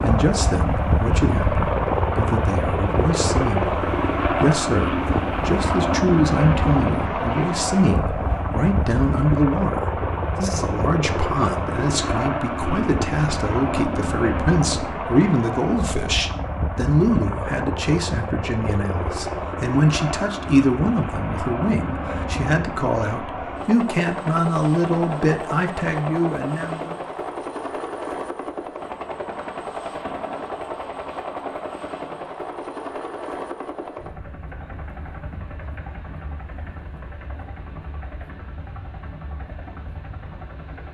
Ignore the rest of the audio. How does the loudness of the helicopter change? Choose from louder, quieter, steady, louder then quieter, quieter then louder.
quieter.